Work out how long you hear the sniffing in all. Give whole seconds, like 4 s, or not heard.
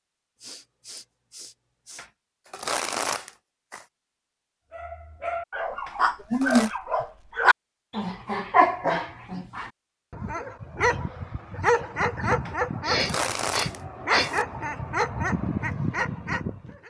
4 s.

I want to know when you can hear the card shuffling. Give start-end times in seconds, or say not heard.
1.9-3.9, 5.8-6.7, 12.4-14.4.